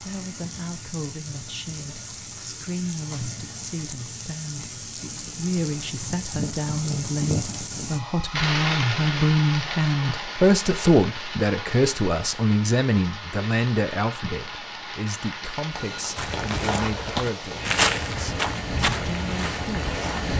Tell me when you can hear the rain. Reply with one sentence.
The rain can be heard from 0.0 to 20.3 s.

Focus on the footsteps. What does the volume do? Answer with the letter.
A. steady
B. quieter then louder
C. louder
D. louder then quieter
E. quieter
D.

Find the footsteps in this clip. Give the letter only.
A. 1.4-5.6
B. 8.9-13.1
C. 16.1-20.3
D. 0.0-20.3
C.